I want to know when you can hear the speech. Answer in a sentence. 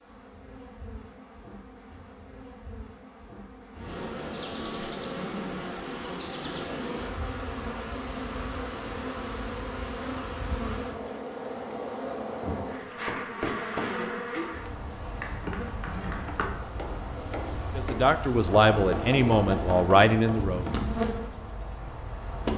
You can hear the speech from 17.8 to 20.6 s.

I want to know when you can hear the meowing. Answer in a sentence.
You can hear the meowing from 20.4 to 21.1 s.